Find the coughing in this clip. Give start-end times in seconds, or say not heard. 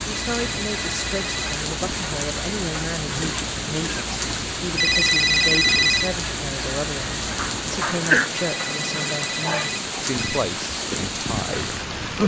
3.2-4.1, 7.3-8.3.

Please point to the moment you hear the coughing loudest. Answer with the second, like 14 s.
8 s.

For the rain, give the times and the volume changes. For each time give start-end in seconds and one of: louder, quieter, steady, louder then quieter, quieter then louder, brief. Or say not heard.
0.0-12.2 steady.